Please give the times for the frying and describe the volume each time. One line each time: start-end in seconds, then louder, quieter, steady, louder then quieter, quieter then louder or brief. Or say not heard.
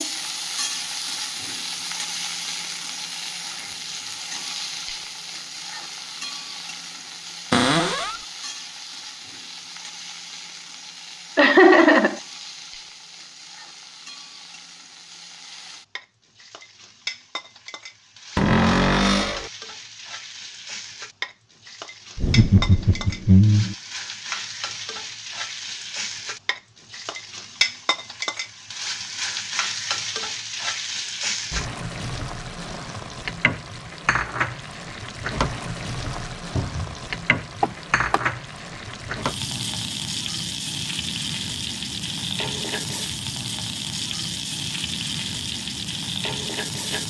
0.0-47.0 quieter then louder.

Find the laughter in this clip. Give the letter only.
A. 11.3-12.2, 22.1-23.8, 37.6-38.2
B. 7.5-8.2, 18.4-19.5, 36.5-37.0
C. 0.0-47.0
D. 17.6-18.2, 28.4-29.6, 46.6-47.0
A.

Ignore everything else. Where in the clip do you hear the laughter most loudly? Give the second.
12 s.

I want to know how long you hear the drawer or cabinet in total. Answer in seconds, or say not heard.
2 s.